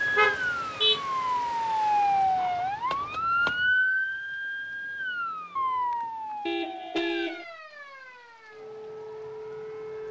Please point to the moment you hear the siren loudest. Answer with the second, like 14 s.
2 s.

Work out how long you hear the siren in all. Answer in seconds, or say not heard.
10 s.